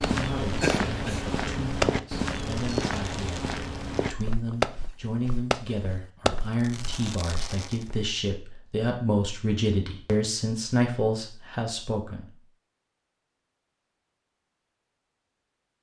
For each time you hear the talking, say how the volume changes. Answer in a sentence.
You can hear the talking from 0.1 to 12.3 s, getting louder.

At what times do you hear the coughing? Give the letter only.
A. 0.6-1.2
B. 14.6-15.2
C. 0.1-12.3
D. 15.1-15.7
A.